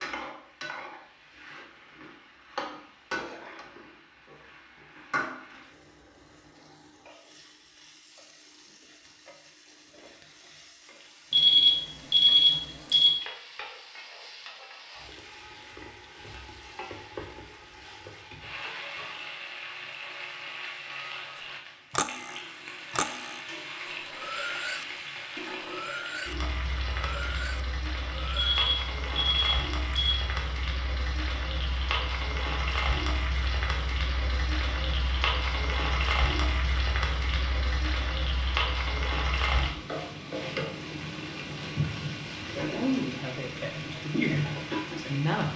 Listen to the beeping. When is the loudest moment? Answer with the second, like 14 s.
12 s.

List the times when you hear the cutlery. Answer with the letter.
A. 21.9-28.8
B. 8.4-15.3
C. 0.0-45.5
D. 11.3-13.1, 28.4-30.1
A.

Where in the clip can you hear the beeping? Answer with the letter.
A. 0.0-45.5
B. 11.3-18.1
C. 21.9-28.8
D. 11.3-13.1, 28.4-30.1
D.